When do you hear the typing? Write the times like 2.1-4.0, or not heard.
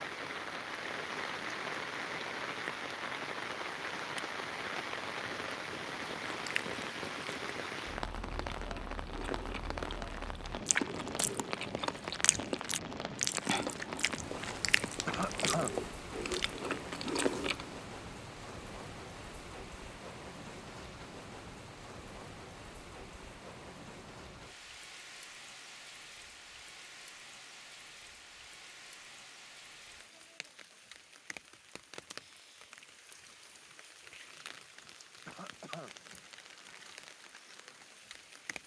not heard.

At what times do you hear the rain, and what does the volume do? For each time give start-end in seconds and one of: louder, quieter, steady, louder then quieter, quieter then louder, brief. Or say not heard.
0.0-38.6 quieter.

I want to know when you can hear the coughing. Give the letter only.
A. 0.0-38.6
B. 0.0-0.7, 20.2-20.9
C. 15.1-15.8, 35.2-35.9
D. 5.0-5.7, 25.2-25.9
C.